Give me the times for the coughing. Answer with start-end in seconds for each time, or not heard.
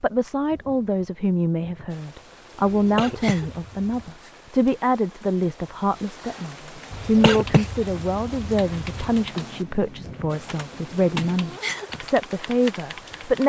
2.6-4.1, 6.9-9.2.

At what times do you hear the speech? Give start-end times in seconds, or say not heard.
0.0-13.4.